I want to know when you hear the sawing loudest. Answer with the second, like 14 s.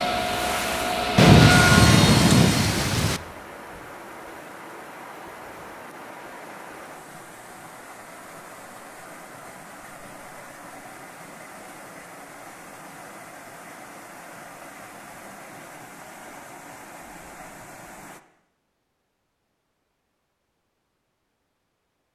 2 s.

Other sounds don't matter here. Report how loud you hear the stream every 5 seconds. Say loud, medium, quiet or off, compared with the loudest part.
loud, medium, medium, medium, off.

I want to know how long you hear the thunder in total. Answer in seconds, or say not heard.
2 s.